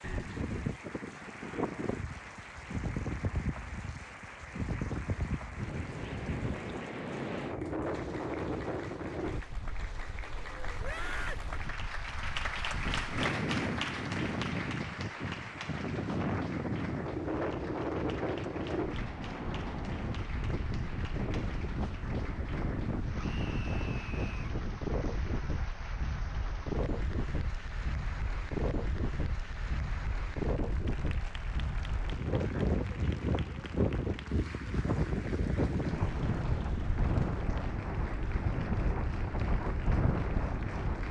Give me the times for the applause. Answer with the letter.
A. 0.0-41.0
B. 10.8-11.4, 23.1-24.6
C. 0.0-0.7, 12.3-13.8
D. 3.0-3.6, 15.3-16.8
A.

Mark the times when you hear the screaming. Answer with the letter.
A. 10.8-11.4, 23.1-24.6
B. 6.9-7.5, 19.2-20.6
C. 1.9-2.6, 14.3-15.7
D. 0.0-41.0
A.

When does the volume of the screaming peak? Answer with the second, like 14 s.
11 s.